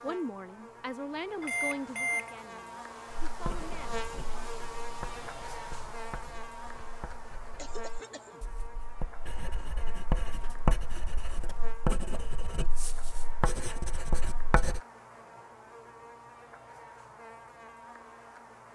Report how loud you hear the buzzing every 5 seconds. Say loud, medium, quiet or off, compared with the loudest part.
loud, loud, medium, medium.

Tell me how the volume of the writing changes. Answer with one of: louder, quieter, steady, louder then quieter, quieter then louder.
quieter then louder.